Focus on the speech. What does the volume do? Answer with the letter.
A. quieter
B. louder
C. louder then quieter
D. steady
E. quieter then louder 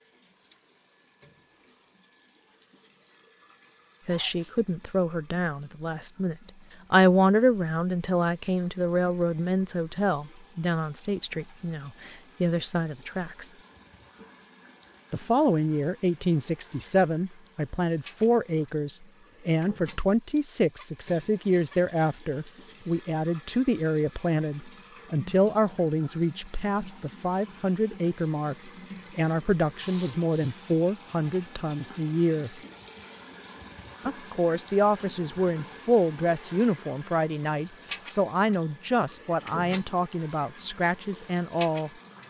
D.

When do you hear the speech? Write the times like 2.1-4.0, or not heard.
4.0-13.6, 15.1-32.5, 34.0-41.9.